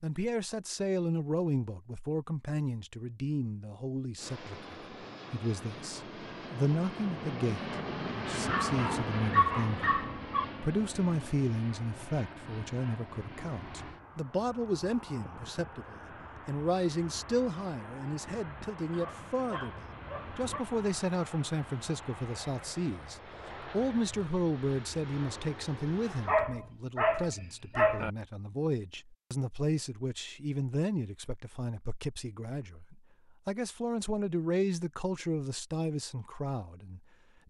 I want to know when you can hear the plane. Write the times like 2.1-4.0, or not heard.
4.2-26.4.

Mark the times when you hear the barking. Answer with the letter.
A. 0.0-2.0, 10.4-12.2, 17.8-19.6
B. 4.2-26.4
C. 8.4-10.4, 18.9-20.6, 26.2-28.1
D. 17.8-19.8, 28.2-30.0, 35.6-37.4
C.